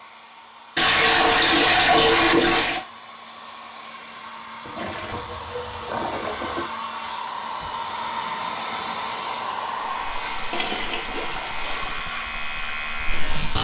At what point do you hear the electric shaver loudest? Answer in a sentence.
The loudest moment of the electric shaver is at 13 seconds.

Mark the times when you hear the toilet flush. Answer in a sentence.
You can hear the toilet flush from 0.8 to 2.9 s, from 4.7 to 6.7 s and from 10.5 to 11.9 s.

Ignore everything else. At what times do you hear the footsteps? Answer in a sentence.
The footsteps can't be heard in this clip.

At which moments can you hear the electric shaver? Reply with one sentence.
You can hear the electric shaver from 9.8 to 13.5 s.